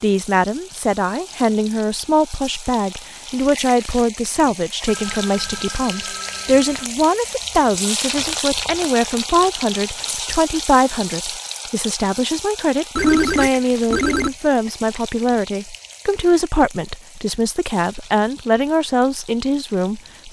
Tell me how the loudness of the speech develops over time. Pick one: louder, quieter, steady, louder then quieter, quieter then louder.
steady.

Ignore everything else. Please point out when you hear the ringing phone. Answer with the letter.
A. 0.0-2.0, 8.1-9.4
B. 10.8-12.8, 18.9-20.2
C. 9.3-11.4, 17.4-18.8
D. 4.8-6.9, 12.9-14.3
D.